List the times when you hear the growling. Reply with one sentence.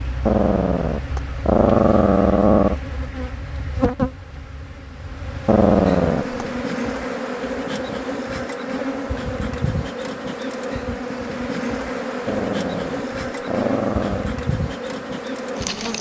You can hear the growling from 0.2 to 2.8 s, from 5.5 to 6.5 s and from 12.2 to 14.3 s.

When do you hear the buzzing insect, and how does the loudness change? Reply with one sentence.
The buzzing insect can be heard from 0.0 to 15.9 s, getting louder.